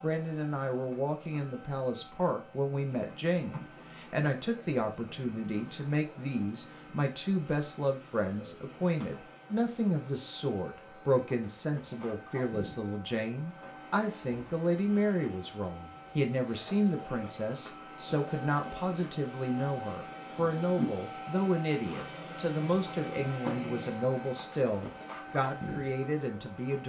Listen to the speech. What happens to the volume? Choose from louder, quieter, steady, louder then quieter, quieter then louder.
steady.